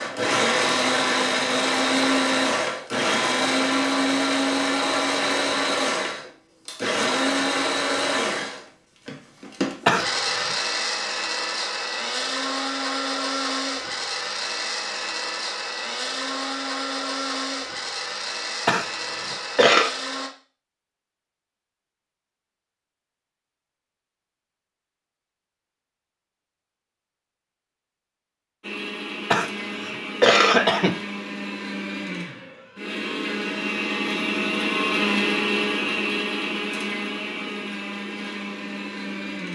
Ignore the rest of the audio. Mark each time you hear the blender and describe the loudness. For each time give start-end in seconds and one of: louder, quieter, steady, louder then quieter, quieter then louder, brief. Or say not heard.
0.0-20.3 quieter
28.6-39.5 louder then quieter.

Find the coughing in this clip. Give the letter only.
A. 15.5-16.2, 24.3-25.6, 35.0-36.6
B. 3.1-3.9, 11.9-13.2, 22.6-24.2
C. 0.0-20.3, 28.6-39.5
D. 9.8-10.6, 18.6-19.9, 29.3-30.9
D.